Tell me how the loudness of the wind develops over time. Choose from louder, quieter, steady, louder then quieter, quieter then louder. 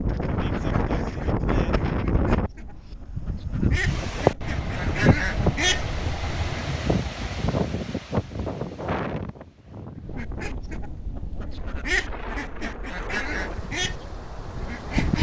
quieter.